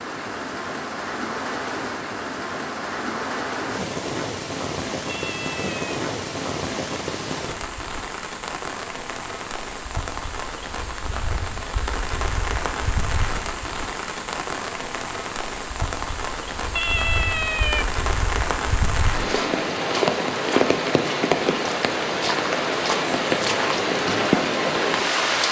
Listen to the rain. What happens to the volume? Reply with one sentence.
The volume of the rain goes up.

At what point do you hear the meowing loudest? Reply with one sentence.
The loudest moment of the meowing is at 17 seconds.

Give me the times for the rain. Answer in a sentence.
The rain can be heard from 0.0 to 25.4 s.